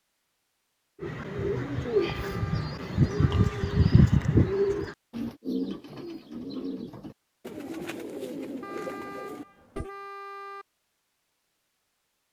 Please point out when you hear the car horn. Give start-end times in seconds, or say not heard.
1.9-3.7, 8.6-10.7.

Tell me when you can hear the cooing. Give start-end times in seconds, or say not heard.
1.0-9.9.